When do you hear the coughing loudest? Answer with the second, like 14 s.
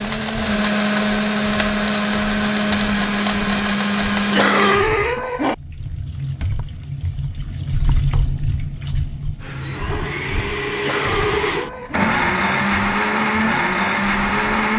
5 s.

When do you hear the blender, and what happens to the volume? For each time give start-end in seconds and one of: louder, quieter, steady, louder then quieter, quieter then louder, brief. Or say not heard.
0.0-4.8 steady
9.4-14.7 louder.